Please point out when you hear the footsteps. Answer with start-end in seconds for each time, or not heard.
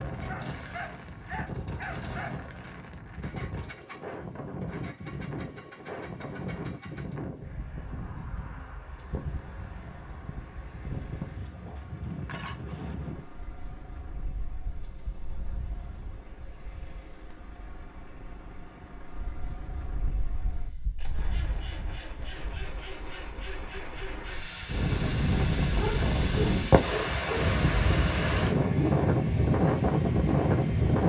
not heard.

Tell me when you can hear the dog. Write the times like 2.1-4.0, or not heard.
0.2-2.5, 25.8-27.6.